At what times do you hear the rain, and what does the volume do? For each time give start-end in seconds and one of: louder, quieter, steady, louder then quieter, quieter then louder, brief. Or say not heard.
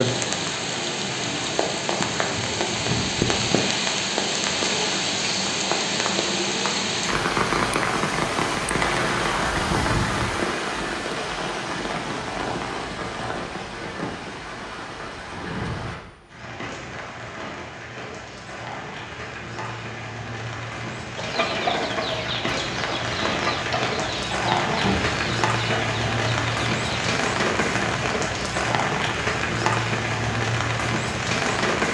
0.0-31.9 quieter then louder.